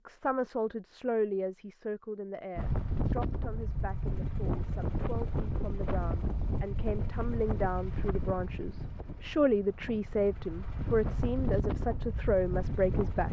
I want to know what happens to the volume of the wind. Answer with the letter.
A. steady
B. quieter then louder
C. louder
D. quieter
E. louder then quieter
B.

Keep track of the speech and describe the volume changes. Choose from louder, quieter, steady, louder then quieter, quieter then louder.
quieter then louder.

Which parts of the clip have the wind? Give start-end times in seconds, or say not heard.
2.5-13.2.